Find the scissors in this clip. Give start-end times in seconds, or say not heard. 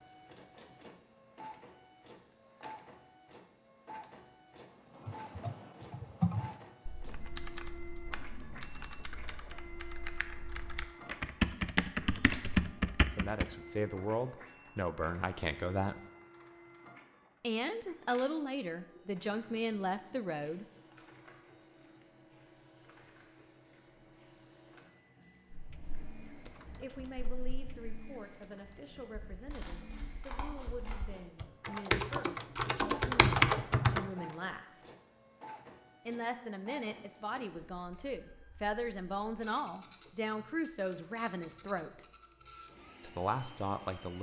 29.5-31.2.